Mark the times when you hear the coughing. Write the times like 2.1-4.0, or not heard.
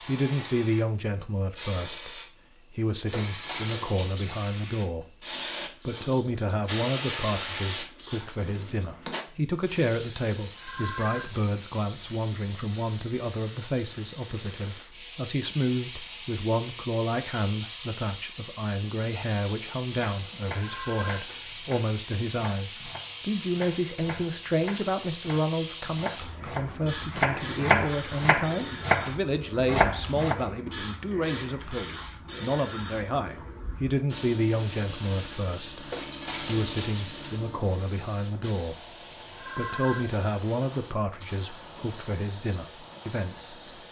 not heard.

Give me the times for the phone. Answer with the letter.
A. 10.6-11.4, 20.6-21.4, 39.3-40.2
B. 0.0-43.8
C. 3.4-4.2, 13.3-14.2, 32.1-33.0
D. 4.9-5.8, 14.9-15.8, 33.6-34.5
A.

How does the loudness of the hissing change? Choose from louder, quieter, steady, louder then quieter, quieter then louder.
steady.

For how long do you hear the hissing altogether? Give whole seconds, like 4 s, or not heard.
44 s.